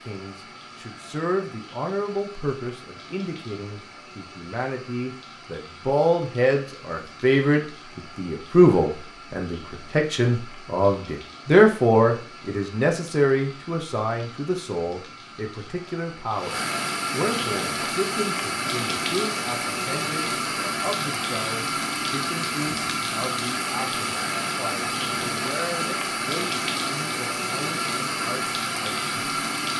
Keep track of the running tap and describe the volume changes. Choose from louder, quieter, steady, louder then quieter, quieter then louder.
louder.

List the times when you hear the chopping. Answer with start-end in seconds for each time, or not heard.
not heard.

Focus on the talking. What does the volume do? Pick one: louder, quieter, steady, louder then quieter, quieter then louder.
louder then quieter.